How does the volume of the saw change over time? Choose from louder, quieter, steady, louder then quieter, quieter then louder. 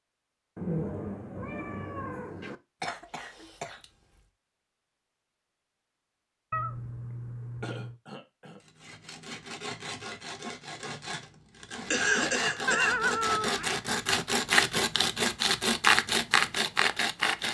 louder.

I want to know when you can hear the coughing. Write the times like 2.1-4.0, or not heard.
2.8-4.2, 7.6-8.6, 11.8-13.2.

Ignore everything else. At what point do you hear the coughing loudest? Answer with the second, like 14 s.
12 s.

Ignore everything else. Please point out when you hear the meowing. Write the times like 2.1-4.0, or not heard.
0.6-2.6, 6.5-8.0, 12.7-13.8.